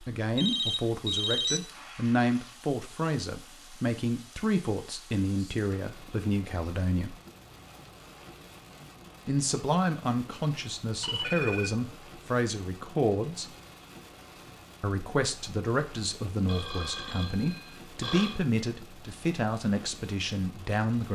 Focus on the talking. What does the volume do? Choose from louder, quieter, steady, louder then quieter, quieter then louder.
steady.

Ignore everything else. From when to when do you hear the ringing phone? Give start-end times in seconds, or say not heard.
0.3-1.6, 11.0-11.9, 16.4-18.4.